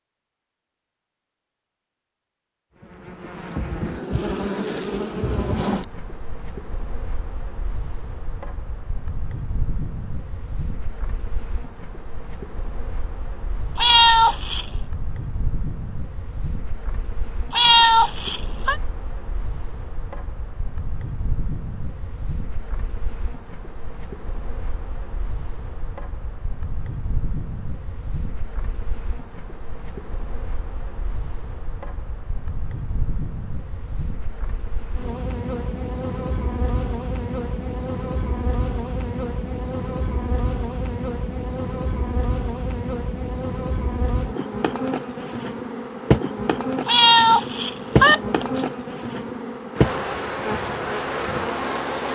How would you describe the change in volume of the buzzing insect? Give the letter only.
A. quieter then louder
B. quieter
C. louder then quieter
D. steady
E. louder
A.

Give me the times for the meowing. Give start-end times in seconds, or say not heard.
13.8-14.7, 17.5-18.8, 46.9-48.6.